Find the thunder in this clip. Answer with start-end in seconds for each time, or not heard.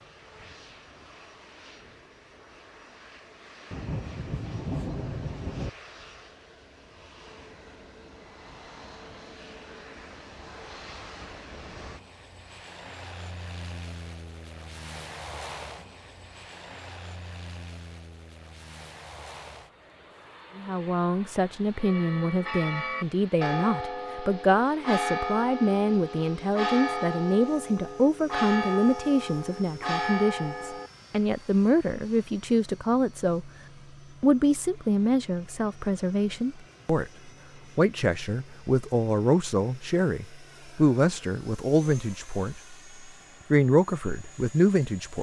3.7-5.7.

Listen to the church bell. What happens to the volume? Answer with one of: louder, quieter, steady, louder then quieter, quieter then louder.
steady.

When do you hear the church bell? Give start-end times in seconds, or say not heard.
21.8-30.9.